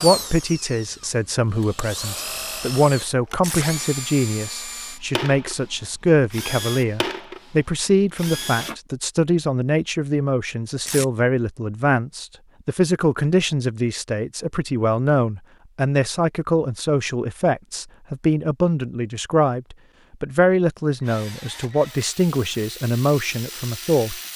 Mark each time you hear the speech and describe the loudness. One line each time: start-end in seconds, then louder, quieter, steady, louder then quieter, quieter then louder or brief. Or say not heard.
0.0-24.2 steady.